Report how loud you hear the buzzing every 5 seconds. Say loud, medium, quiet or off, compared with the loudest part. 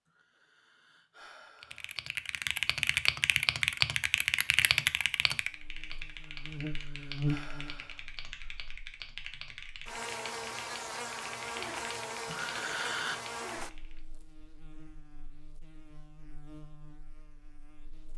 off, loud, loud, quiet.